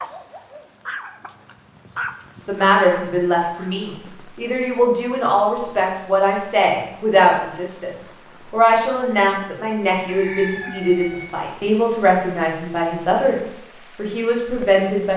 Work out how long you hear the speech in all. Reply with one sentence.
The speech can be heard for 13 seconds in total.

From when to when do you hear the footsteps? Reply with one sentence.
You can't hear the footsteps here.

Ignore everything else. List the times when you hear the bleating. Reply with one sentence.
You can't hear the bleating here.